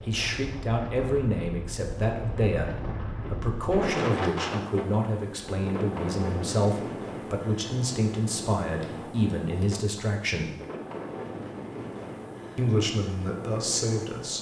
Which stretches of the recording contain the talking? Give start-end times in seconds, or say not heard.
0.1-10.5, 12.6-14.3.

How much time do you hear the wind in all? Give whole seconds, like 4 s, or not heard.
14 s.